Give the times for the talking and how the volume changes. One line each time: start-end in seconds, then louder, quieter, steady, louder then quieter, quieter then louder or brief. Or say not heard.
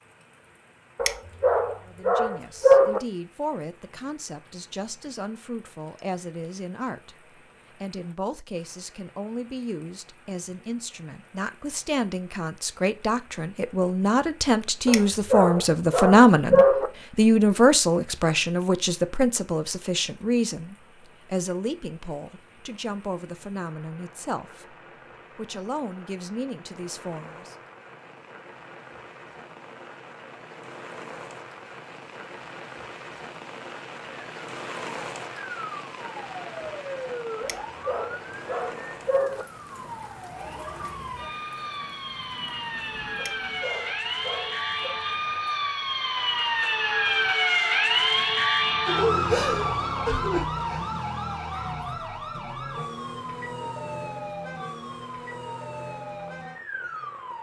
1.9-24.8 louder then quieter
25.4-27.6 brief.